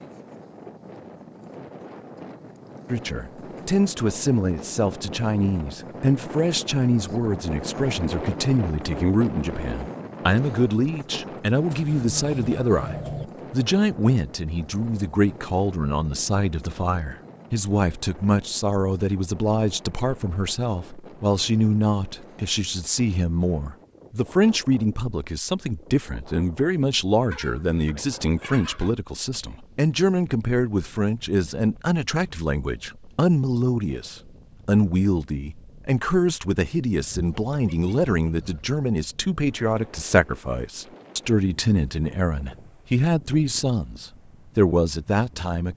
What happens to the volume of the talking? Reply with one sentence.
The volume of the talking stays about the same.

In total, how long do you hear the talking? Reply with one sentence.
The talking can be heard for 43 seconds in total.